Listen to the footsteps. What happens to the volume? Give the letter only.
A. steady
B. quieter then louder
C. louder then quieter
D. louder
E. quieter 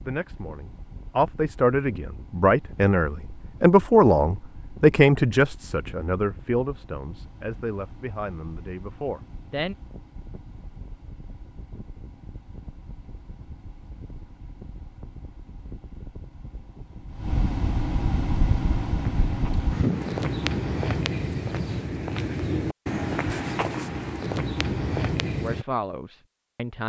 A.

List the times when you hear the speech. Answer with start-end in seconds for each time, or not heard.
0.0-9.8, 25.4-26.8.